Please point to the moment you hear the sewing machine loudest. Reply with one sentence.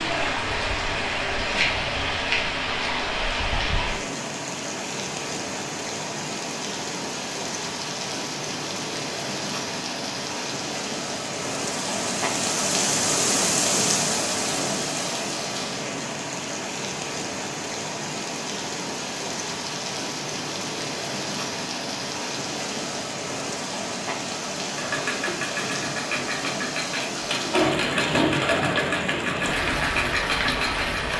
The volume of the sewing machine peaks at 28 seconds.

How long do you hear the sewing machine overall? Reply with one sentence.
You can hear the sewing machine for 6 seconds altogether.